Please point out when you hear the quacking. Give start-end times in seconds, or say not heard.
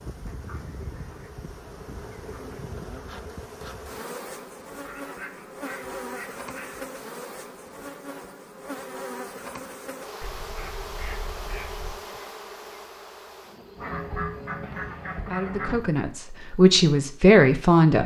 0.2-2.8, 4.8-6.8, 10.2-12.0, 13.8-15.8.